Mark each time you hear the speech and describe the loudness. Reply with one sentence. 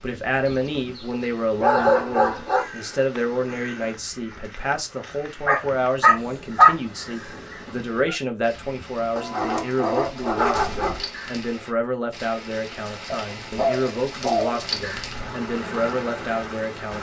The speech can be heard from 0.0 to 16.9 s, at a steady volume.